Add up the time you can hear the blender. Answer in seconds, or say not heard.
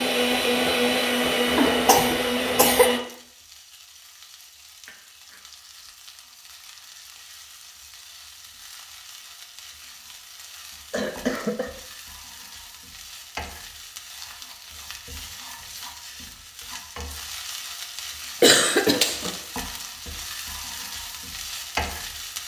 3 s.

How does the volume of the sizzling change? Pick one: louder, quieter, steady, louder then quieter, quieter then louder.
louder.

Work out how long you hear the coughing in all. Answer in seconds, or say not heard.
3 s.